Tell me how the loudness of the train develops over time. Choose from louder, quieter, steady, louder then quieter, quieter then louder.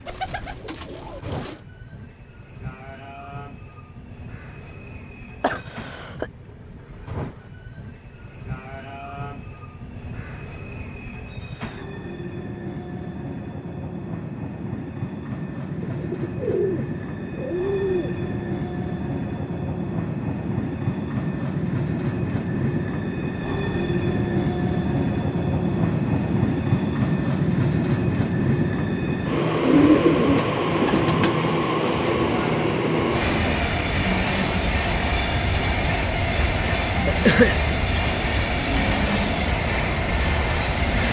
louder.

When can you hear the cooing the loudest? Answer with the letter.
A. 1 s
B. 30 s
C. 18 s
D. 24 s
B.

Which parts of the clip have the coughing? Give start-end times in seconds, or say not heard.
5.4-6.3, 37.0-37.6.